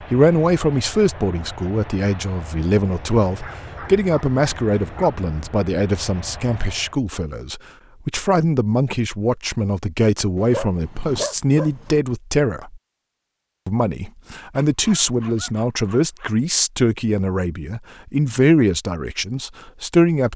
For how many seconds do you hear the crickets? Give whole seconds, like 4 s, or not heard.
not heard.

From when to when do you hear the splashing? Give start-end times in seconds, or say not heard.
not heard.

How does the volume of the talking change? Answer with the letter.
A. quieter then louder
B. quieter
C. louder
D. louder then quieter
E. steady
E.